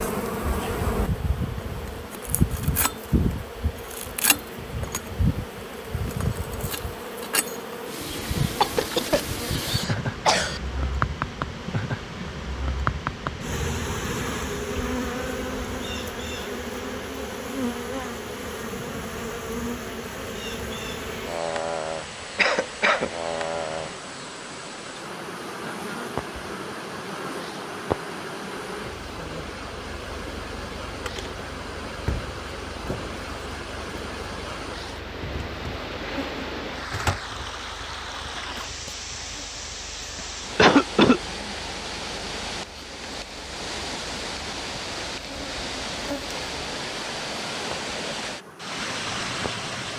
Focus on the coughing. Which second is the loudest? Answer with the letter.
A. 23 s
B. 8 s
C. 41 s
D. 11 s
C.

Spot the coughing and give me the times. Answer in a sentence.
You can hear the coughing from 8.6 to 10.6 s, from 22.4 to 23.1 s and from 40.1 to 41.2 s.